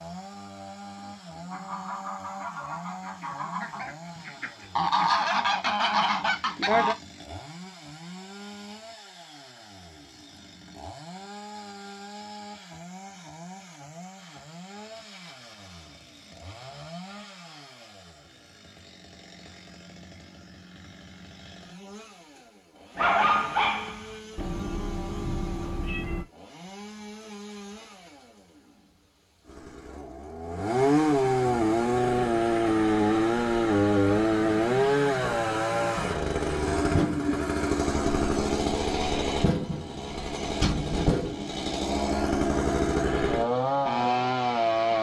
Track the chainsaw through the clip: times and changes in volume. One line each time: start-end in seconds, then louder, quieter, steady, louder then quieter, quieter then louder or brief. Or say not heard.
0.0-44.9 louder.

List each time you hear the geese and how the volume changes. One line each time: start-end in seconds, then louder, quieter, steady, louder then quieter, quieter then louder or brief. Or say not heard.
0.9-7.0 louder.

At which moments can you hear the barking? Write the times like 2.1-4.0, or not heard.
22.9-24.4.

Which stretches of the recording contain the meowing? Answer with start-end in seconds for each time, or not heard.
24.4-26.2.